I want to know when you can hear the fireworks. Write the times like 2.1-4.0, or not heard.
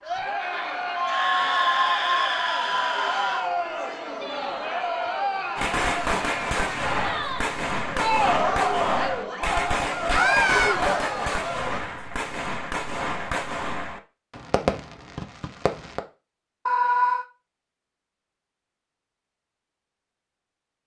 5.5-16.0.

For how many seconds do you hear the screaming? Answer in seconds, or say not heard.
4 s.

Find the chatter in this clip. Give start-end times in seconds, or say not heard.
0.0-11.8.